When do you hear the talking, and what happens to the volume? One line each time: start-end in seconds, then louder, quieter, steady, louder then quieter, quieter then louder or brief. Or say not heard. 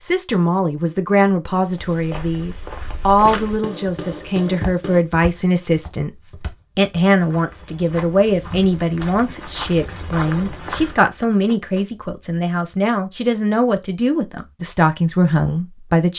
0.0-16.1 steady.